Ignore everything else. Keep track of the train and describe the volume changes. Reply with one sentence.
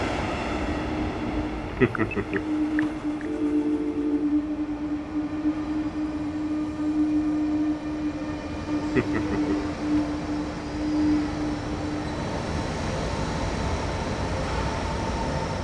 The volume of the train stays about the same.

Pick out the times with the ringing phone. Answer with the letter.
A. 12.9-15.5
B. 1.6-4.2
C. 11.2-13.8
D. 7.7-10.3
B.